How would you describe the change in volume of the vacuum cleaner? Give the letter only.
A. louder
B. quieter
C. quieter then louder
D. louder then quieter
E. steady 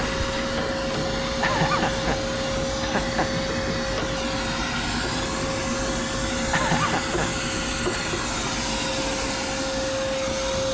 E.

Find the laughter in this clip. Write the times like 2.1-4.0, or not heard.
1.4-3.5, 6.5-8.1.